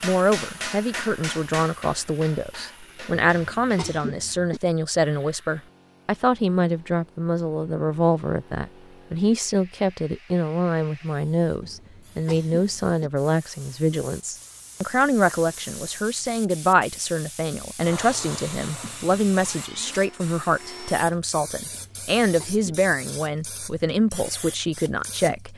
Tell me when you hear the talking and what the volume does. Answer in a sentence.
You can hear the talking from 0.0 to 25.5 s, at a steady volume.